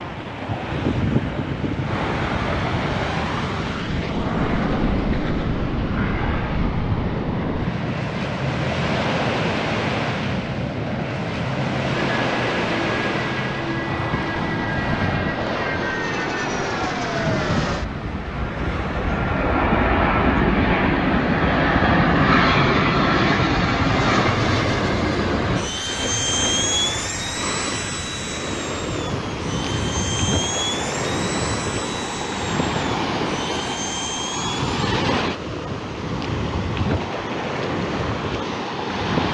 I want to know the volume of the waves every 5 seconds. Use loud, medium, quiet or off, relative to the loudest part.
loud, loud, loud, loud, off, loud, loud, loud.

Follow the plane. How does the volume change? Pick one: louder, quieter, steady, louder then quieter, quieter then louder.
louder then quieter.